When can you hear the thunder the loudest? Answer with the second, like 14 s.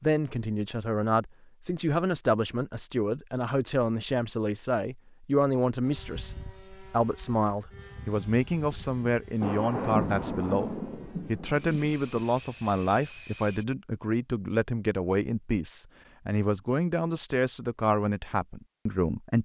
10 s.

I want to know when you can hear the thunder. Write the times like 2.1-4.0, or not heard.
9.4-12.0.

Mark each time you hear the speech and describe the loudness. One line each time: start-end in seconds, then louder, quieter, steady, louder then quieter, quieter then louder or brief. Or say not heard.
0.0-19.4 steady.